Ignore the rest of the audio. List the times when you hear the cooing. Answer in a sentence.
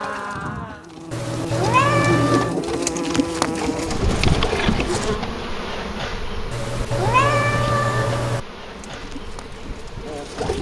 You can hear the cooing from 0.0 to 5.2 s and from 8.7 to 10.5 s.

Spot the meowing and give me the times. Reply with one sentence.
The meowing can be heard from 1.1 to 2.5 s and from 6.5 to 8.4 s.